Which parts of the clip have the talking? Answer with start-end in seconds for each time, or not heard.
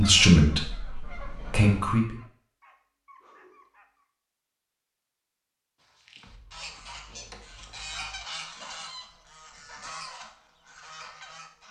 0.0-2.1.